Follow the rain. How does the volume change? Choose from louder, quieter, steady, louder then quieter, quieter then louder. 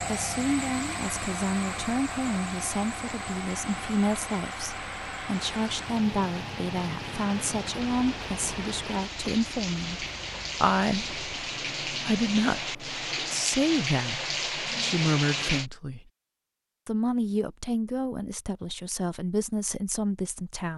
louder.